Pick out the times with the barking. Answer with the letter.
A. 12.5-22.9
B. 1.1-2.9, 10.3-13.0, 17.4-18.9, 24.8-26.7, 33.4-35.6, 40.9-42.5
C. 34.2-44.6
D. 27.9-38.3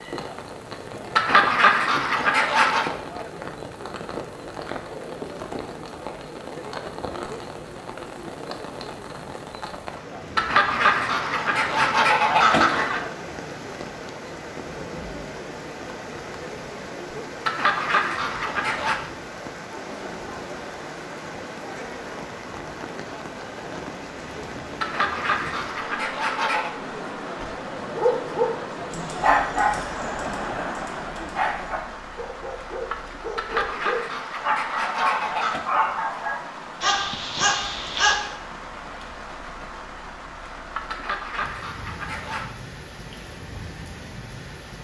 D.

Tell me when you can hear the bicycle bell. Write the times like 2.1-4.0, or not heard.
not heard.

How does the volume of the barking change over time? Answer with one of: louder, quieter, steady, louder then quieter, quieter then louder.
quieter then louder.